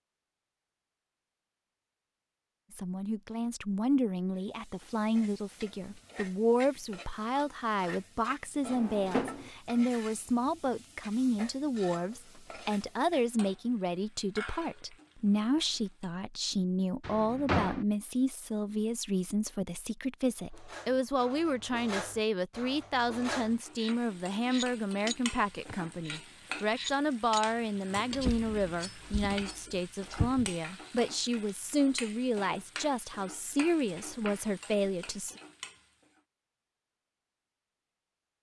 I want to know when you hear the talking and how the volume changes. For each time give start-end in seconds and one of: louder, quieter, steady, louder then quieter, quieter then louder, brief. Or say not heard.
2.7-35.4 steady.